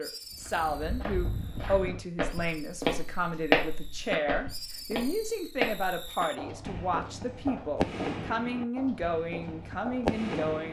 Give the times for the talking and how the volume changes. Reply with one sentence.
You can hear the talking from 0.0 to 10.6 s, at a steady volume.